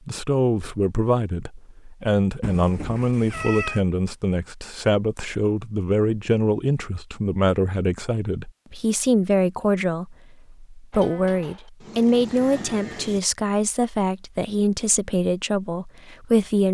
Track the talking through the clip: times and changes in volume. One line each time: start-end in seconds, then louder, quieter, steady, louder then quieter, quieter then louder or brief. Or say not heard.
0.1-16.7 steady.